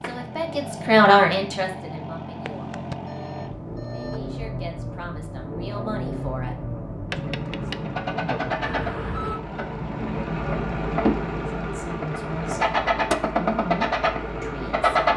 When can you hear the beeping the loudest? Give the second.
9 s.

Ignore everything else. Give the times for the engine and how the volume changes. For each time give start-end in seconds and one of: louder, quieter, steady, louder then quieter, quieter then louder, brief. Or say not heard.
0.0-15.1 louder.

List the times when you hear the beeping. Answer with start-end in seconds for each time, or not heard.
2.5-4.2, 8.7-9.4.